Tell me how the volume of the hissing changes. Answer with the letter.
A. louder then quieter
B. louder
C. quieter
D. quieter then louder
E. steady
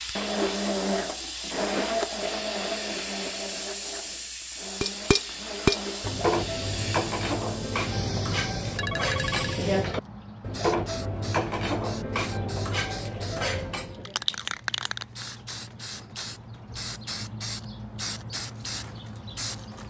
E.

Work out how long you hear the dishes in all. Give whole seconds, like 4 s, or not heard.
9 s.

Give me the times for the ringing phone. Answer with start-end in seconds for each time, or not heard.
8.8-9.6.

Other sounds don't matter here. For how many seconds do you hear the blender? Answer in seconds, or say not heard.
6 s.